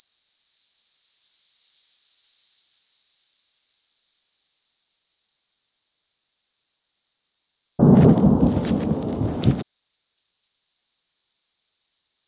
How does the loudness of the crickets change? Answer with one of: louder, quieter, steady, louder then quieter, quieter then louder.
quieter.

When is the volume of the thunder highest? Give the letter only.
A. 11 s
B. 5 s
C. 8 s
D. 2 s
C.